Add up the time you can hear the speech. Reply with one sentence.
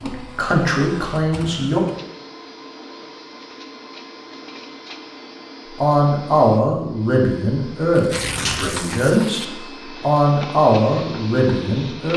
The speech can be heard for 8 seconds in total.